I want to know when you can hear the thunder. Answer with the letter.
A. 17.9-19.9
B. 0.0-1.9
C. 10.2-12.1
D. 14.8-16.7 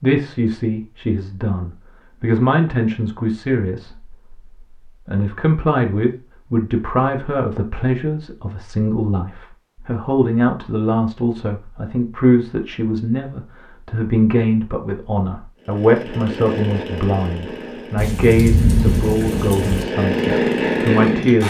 A.